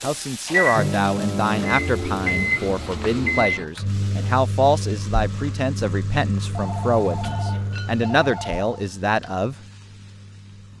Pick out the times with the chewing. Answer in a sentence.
The chewing can't be heard in this clip.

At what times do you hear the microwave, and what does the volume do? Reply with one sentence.
The microwave can be heard from 0.0 to 10.7 s, getting quieter.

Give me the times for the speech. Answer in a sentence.
The speech can be heard from 0.0 to 9.6 s.